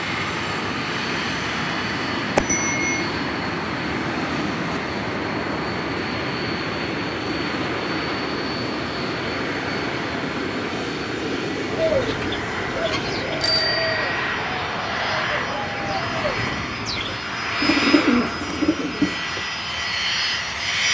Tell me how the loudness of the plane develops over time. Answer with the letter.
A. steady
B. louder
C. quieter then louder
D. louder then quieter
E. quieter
A.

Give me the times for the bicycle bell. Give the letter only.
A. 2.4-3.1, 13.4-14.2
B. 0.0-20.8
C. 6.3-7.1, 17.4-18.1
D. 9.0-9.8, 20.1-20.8
A.